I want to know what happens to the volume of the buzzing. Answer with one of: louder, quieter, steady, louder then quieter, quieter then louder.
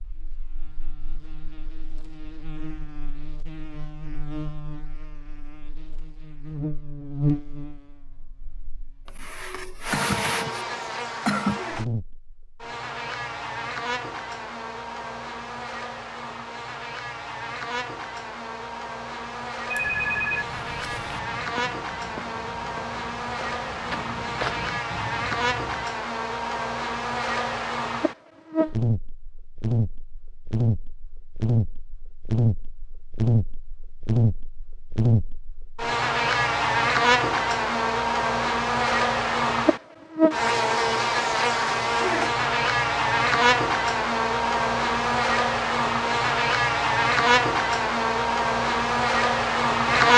louder.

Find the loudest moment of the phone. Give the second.
20 s.